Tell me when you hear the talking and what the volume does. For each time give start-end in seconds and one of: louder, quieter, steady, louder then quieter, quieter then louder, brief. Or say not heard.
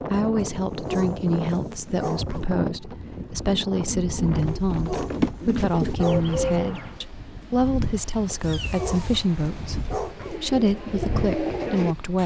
0.0-12.2 steady.